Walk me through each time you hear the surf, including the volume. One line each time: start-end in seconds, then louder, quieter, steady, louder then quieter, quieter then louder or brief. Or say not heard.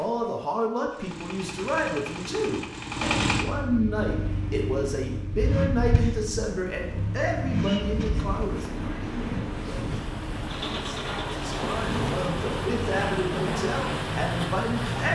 4.0-15.1 louder.